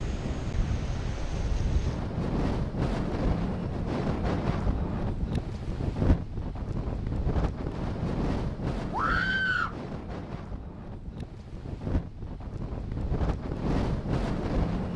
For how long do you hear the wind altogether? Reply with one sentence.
The wind can be heard for 15 seconds in total.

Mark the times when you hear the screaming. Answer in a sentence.
You can hear the screaming from 8.9 to 9.8 s.